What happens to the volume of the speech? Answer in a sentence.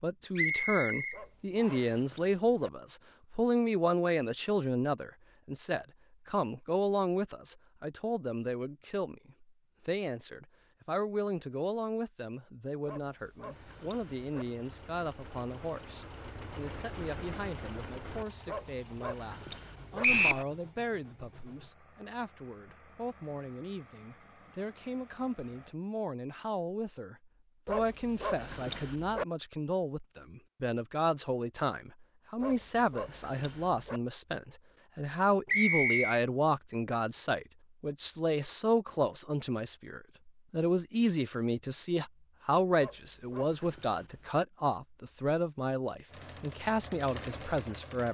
The loudness of the speech goes down, then up.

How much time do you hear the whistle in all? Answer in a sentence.
You can hear the whistle for 3 seconds altogether.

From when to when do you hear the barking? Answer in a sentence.
You can hear the barking from 1.1 to 2.7 s, from 12.8 to 14.4 s, from 18.4 to 20.1 s, from 27.6 to 29.2 s, from 32.4 to 34.0 s and from 42.8 to 44.3 s.